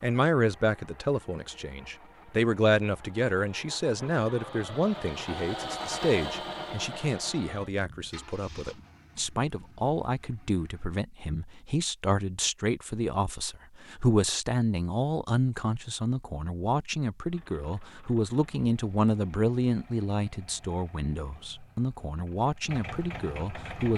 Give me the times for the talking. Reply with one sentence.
You can hear the talking from 0.0 to 23.9 s.